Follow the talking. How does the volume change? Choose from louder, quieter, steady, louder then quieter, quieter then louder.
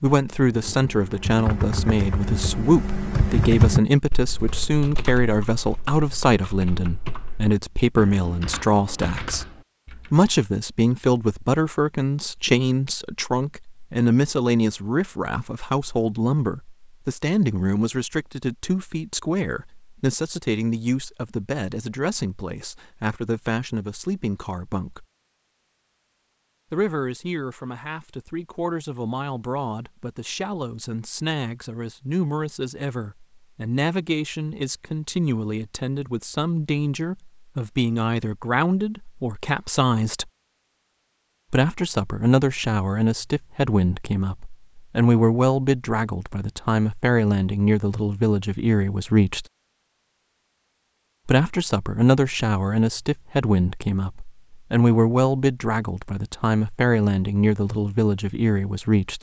quieter then louder.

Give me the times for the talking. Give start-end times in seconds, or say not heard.
0.0-9.4, 10.1-25.1, 26.7-40.3, 41.5-49.5, 51.2-59.1.